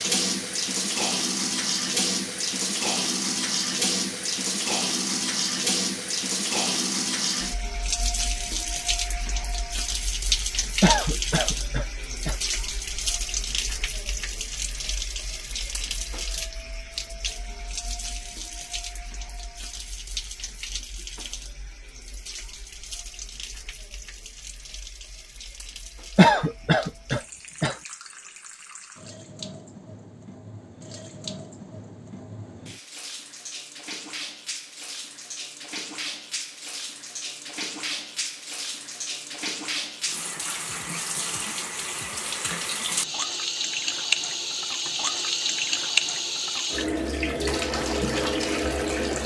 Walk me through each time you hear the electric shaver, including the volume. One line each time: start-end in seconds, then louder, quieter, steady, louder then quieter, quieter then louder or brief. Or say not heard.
not heard.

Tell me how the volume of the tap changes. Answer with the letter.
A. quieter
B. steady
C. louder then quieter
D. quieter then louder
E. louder
D.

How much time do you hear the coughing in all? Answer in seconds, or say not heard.
3 s.